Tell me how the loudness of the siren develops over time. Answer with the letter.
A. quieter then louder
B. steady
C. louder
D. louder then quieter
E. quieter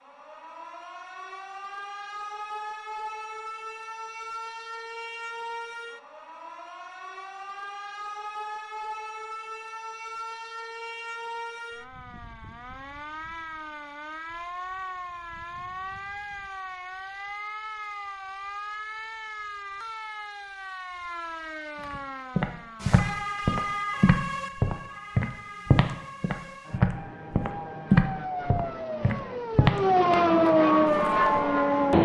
C.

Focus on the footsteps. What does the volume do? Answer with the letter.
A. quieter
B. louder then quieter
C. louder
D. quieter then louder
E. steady
E.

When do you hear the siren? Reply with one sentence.
You can hear the siren from 0.0 to 32.0 s.